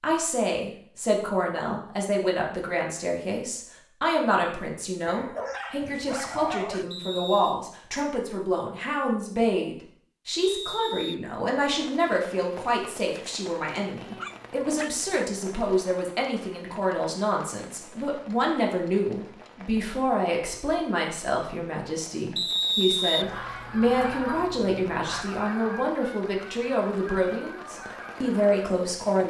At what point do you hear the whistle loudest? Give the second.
23 s.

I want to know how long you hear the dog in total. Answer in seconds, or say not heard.
5 s.